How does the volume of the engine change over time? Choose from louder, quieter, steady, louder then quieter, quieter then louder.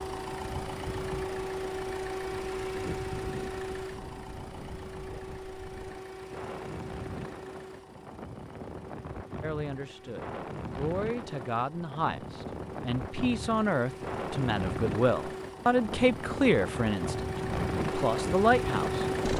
quieter then louder.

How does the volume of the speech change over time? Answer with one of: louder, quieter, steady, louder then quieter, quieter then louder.
louder.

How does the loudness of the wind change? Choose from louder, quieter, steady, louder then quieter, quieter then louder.
louder.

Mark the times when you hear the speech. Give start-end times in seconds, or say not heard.
9.4-19.0.